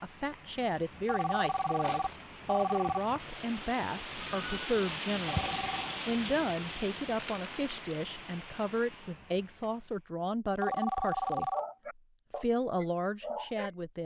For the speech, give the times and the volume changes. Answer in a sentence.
The speech can be heard from 0.0 to 11.5 s, at a steady volume; and briefly from 12.3 to 14.0 s.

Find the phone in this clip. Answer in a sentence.
The phone can be heard from 1.1 to 3.0 s, from 5.2 to 5.8 s and from 10.6 to 11.6 s.